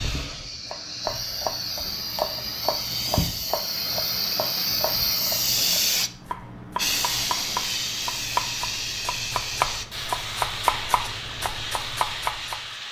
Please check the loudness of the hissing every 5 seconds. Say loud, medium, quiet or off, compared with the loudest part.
loud, loud, medium.